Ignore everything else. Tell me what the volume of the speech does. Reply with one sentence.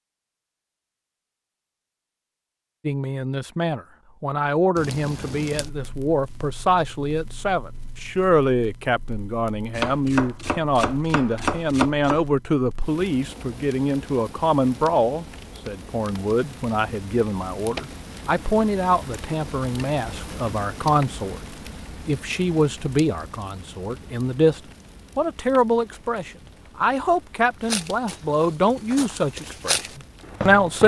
The volume of the speech stays about the same.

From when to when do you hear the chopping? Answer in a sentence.
You can hear the chopping from 9.8 to 12.2 s.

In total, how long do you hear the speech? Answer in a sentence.
The speech can be heard for 28 seconds in total.